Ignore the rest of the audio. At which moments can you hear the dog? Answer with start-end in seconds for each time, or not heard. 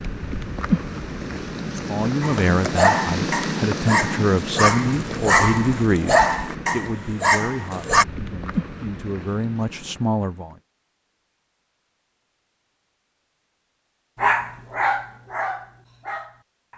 2.2-8.1, 14.2-16.7.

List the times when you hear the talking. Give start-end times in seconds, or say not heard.
1.9-10.6.